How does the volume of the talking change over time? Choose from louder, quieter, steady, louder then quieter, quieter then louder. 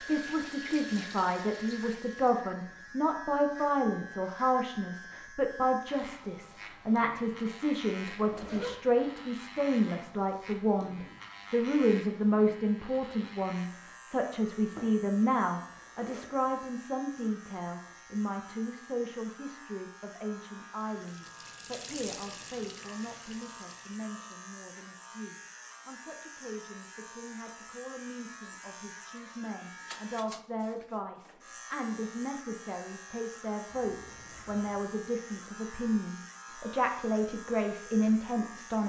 quieter then louder.